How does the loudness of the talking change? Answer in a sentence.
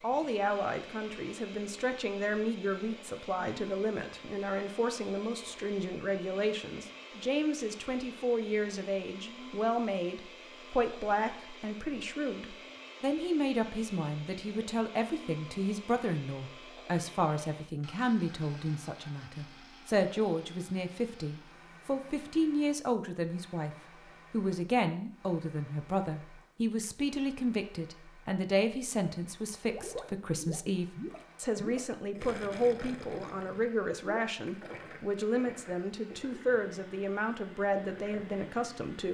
The volume of the talking stays about the same.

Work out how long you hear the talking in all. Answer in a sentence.
You can hear the talking for 39 seconds altogether.